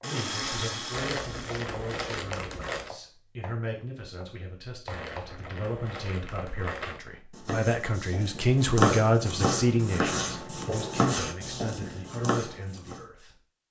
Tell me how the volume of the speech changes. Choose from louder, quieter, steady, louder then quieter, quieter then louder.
louder then quieter.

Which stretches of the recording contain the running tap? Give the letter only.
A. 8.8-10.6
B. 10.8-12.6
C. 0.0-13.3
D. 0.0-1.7
D.